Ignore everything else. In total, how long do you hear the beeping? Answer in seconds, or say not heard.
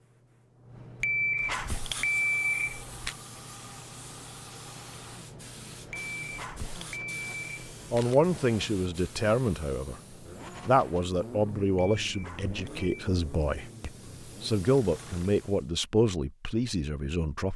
6 s.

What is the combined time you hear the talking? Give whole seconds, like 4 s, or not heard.
9 s.